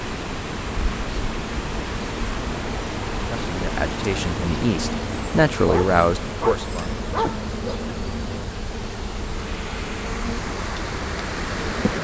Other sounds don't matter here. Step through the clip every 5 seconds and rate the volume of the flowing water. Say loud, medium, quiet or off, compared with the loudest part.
loud, medium, loud.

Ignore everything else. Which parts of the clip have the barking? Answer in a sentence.
You can hear the barking from 5.5 to 7.9 s.